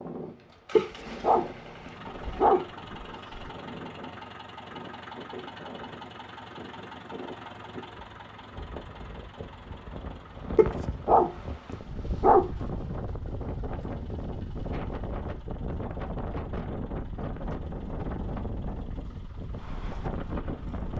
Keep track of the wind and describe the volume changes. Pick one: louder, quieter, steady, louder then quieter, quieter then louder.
louder.